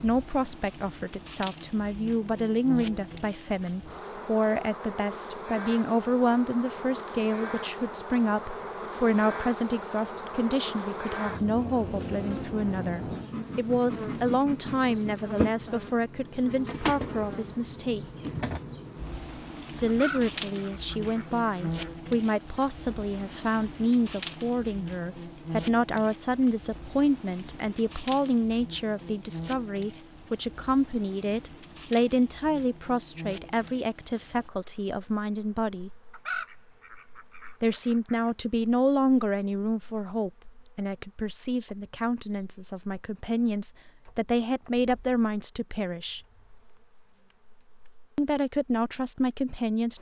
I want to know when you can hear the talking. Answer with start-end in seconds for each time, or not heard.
0.0-18.0, 19.8-35.9, 37.6-46.2, 48.1-49.9.